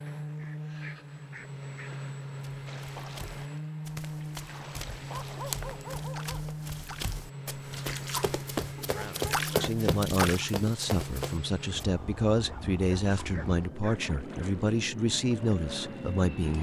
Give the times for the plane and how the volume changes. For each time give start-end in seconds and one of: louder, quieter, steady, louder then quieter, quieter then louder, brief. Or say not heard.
0.0-16.5 steady.